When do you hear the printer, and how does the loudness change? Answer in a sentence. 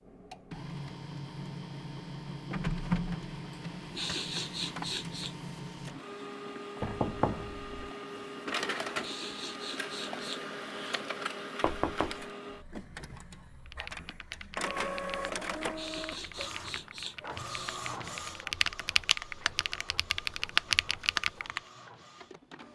The printer can be heard from 0.1 to 22.6 s, getting quieter.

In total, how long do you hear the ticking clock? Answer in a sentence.
You can't hear the ticking clock here.